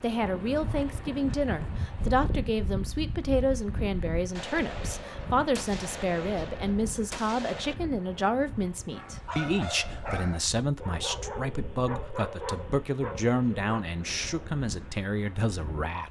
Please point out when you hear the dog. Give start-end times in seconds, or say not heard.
8.9-13.8.